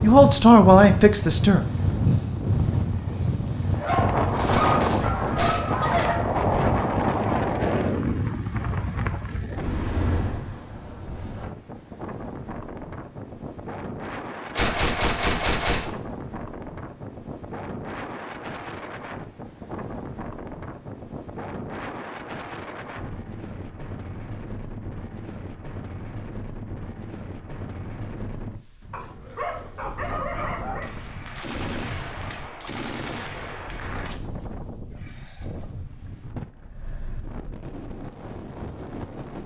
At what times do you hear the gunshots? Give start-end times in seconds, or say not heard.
4.3-5.8, 14.5-16.0, 30.8-34.2.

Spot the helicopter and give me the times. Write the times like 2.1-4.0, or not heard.
not heard.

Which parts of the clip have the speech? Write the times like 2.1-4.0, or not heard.
0.0-1.6.